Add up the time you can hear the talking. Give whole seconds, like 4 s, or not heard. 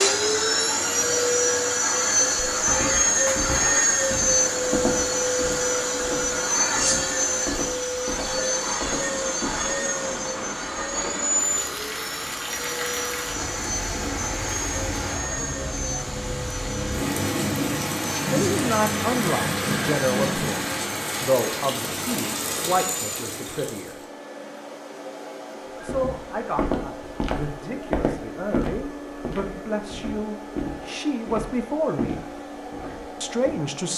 13 s.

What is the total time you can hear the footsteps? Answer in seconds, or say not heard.
16 s.